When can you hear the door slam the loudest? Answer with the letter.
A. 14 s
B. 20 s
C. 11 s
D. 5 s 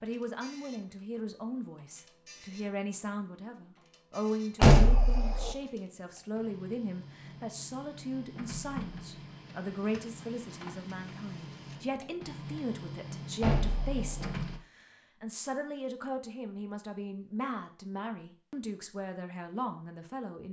D.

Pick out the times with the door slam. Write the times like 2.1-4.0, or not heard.
4.6-5.5, 13.4-14.3.